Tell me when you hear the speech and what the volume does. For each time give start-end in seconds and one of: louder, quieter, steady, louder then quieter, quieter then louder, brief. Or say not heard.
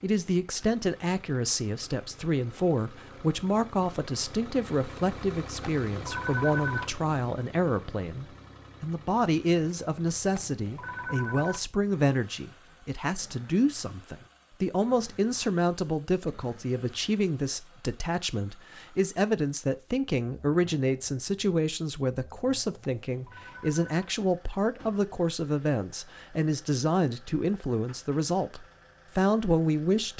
0.0-30.1 steady.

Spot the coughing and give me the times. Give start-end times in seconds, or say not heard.
not heard.